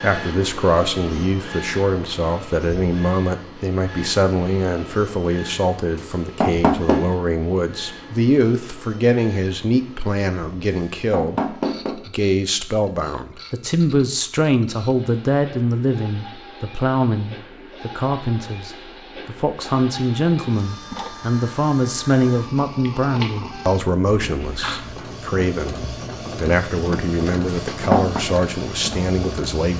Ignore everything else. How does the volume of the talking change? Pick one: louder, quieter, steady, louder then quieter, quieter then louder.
steady.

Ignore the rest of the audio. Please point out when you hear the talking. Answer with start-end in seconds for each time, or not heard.
0.0-29.7.